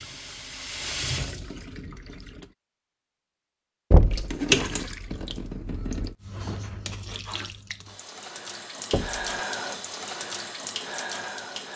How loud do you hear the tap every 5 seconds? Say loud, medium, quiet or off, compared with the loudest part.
loud, medium, medium.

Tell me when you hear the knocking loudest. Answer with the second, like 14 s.
4 s.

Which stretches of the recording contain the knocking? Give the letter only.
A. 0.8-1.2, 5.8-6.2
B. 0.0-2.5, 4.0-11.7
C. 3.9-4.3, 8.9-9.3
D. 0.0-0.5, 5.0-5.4
C.